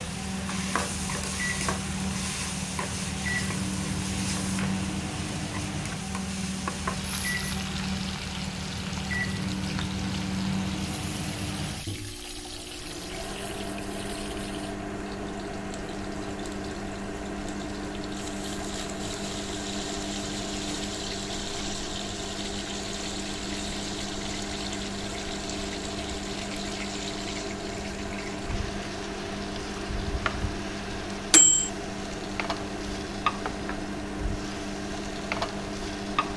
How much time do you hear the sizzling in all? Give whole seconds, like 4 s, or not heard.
36 s.